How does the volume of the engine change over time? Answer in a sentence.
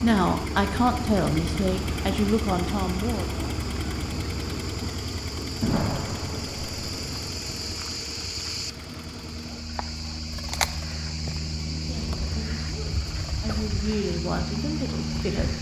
The loudness of the engine goes down.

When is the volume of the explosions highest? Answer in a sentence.
The loudest moment of the explosions is at 6 seconds.